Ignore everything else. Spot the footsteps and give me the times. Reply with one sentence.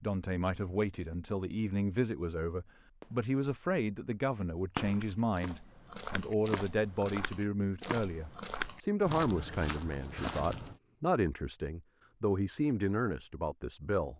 The footsteps can be heard from 4.8 to 10.8 s.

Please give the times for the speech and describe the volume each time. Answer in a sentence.
The speech can be heard from 0.0 to 14.1 s, at a steady volume.